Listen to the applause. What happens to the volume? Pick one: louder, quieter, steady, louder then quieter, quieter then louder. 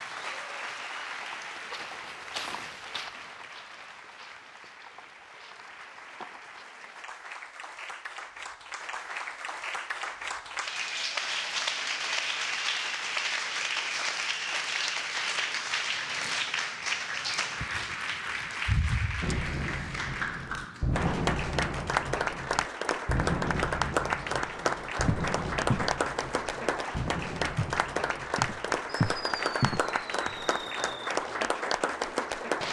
louder.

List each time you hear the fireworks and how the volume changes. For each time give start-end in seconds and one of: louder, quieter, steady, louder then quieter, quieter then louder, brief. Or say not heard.
19.2-30.9 quieter.